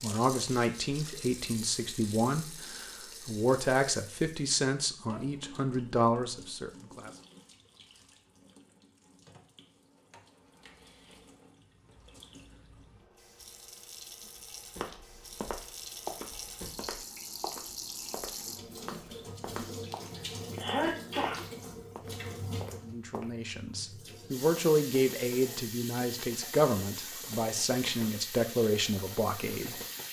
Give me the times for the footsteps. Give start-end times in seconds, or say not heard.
14.8-23.2.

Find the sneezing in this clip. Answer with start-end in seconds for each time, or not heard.
20.1-21.4.